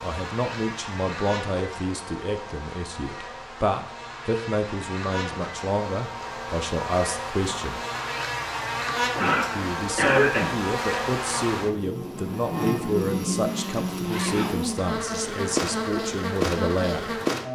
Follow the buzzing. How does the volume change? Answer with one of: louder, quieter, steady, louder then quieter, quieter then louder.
louder.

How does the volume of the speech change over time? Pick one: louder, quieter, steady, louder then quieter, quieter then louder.
steady.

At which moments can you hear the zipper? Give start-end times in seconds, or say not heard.
13.8-14.8.